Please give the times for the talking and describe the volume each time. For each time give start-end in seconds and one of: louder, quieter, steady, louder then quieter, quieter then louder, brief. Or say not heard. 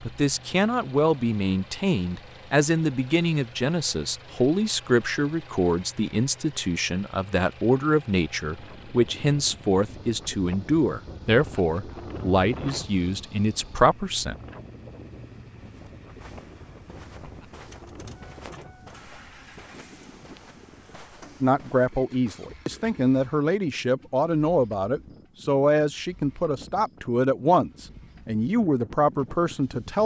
0.0-14.3 steady
21.4-30.0 steady.